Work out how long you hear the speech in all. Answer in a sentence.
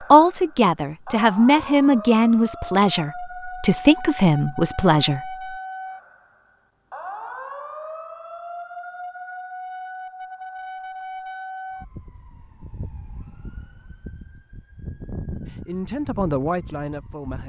The speech can be heard for 7 seconds in total.